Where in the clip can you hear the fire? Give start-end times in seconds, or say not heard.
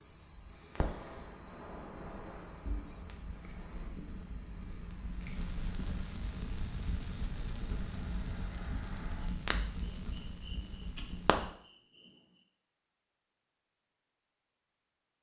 0.5-11.5.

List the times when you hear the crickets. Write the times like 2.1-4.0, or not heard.
0.0-12.4.